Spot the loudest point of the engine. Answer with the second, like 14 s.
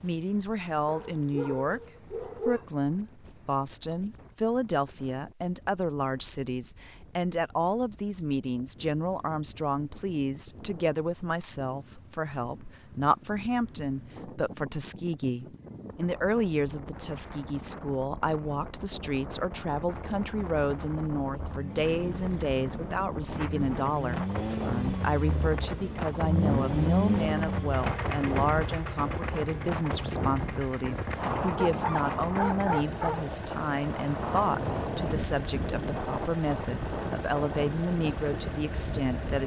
27 s.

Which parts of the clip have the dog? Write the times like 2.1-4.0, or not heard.
0.8-2.6, 31.6-33.2.